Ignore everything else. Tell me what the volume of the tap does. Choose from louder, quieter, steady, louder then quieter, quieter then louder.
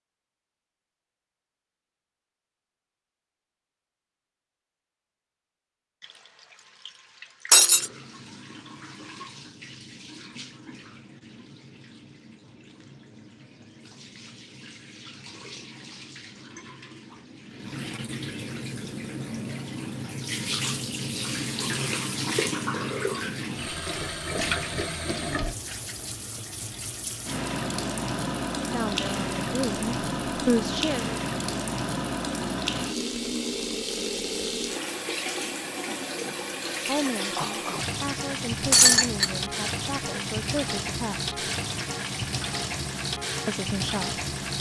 louder.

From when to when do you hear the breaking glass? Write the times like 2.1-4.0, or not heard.
7.5-7.9, 38.7-39.3.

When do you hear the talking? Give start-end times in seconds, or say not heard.
28.6-31.2, 36.9-41.3, 43.5-44.2.